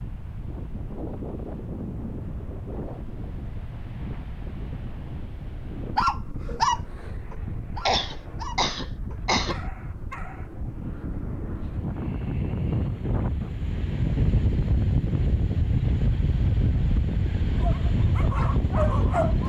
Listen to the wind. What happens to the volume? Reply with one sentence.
The loudness of the wind goes up.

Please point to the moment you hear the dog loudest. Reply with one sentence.
The loudest moment of the dog is at 7 seconds.